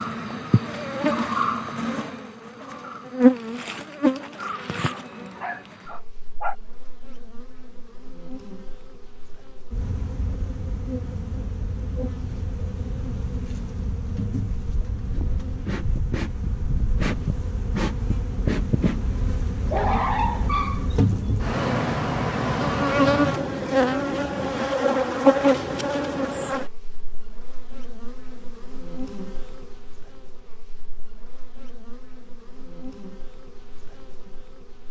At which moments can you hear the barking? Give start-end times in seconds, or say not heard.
4.9-6.5, 19.6-21.4.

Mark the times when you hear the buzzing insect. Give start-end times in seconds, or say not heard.
0.0-34.8.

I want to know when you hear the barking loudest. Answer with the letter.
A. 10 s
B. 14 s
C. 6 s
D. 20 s
D.